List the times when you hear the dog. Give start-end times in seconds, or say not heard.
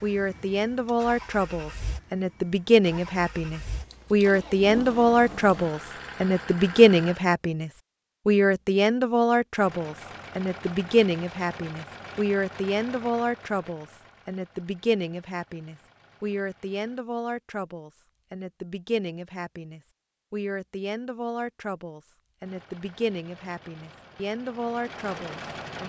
not heard.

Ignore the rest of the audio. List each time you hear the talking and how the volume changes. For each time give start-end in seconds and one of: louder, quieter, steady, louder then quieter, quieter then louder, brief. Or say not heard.
0.0-25.8 quieter.